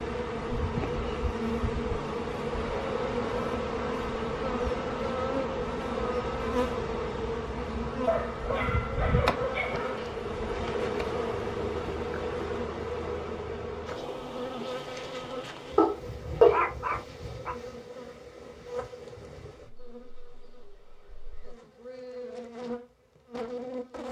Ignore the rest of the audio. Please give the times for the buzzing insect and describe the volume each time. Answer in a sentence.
The buzzing insect can be heard from 0.0 to 24.0 s, getting quieter.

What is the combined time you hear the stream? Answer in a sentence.
The stream can't be heard in this clip.